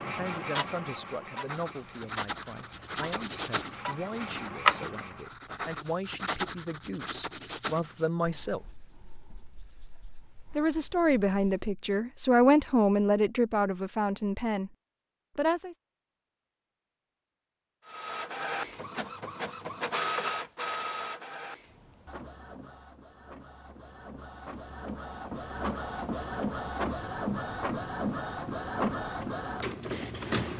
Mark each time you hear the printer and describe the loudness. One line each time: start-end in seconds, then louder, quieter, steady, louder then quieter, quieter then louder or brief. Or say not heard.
0.0-5.3 quieter then louder
17.9-30.5 quieter then louder.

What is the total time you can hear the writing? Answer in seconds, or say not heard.
10 s.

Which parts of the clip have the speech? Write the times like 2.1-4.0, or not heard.
0.1-8.7, 10.6-14.7, 15.3-15.8.